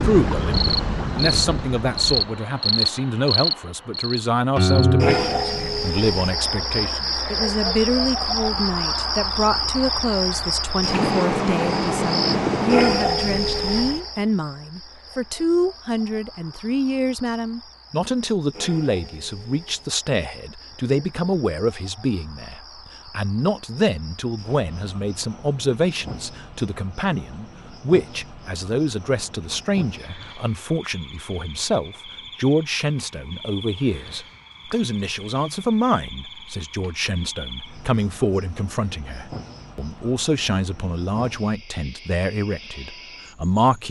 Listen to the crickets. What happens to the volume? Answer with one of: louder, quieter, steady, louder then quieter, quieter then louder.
quieter.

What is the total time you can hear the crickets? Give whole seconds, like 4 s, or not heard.
44 s.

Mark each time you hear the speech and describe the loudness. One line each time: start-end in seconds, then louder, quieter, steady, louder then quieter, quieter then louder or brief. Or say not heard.
0.0-43.8 steady.